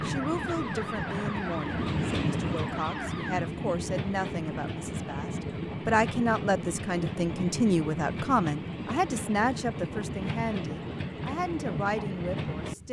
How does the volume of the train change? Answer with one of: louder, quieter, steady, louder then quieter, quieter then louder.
steady.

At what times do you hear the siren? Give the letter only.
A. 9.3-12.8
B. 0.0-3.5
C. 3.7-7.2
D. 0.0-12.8
B.